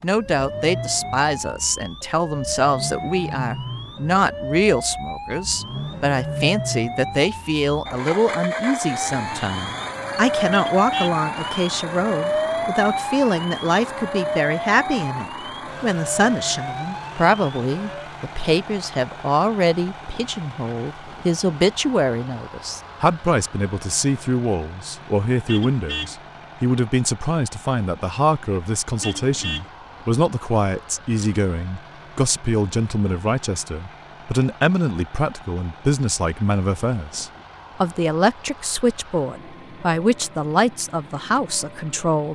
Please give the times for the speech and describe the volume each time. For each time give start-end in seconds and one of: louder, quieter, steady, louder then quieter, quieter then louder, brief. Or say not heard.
0.0-42.3 steady.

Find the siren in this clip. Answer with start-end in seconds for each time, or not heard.
0.0-18.1.